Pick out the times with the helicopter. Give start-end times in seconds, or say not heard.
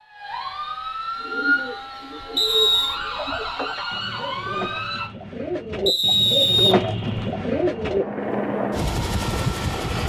7.1-10.0.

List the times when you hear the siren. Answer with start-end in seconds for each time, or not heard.
0.0-5.1.